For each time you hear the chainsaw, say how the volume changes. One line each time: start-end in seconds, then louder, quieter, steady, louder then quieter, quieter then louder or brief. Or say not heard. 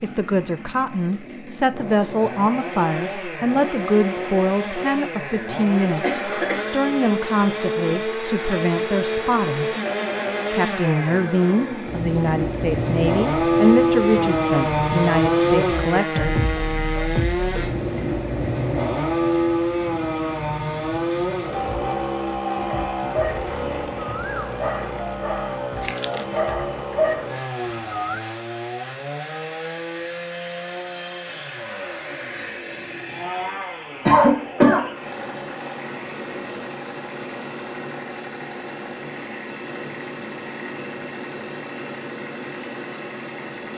0.0-43.7 louder then quieter.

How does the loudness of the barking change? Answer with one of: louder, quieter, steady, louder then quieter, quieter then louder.
quieter then louder.